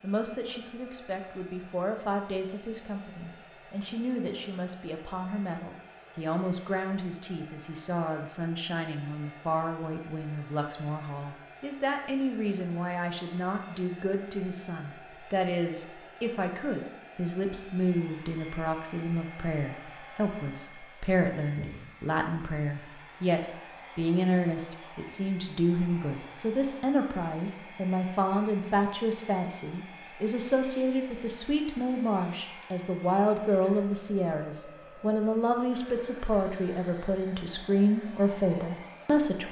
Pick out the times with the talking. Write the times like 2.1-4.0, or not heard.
0.0-39.4.